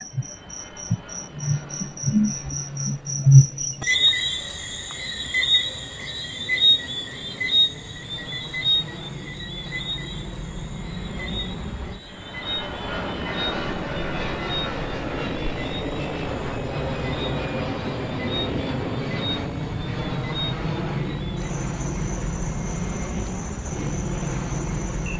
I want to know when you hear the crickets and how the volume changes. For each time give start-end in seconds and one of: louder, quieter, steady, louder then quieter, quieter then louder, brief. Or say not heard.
0.0-25.1 quieter.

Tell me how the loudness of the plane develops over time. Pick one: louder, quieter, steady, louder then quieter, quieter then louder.
louder.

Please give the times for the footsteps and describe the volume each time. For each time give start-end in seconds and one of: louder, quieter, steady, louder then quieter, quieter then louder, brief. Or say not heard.
not heard.